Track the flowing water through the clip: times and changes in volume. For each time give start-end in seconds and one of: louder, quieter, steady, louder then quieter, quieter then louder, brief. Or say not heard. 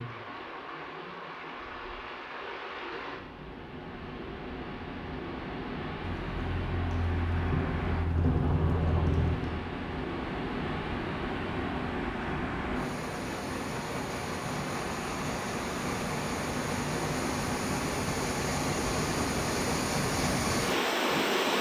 0.0-21.5 louder.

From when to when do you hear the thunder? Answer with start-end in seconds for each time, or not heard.
6.0-9.6.